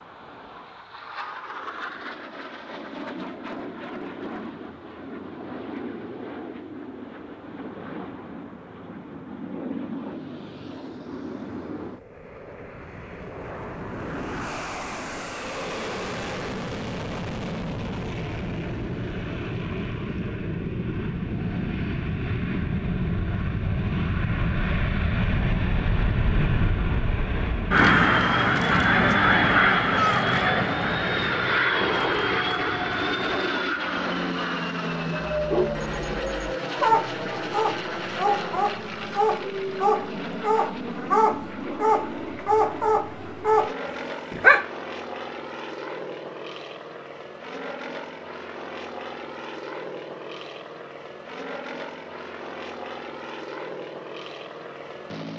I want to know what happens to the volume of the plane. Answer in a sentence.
The volume of the plane goes up, then down.